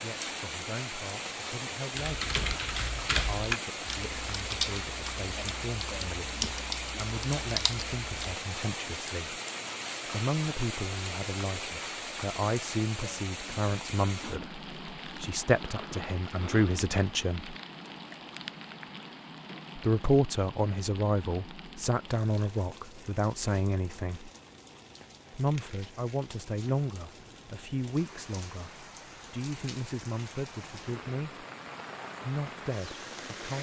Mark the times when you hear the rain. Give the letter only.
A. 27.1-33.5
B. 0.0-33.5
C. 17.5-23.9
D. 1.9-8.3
B.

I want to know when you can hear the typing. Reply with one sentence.
The typing can be heard from 1.9 to 8.3 s.